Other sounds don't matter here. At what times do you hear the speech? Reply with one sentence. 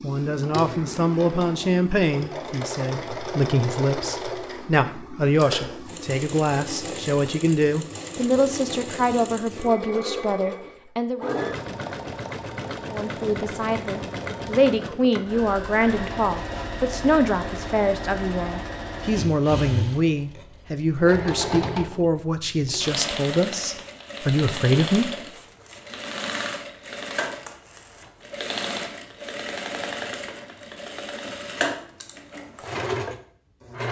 The speech can be heard from 0.0 to 11.4 s and from 12.8 to 25.1 s.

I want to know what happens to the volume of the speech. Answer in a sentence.
The volume of the speech stays about the same.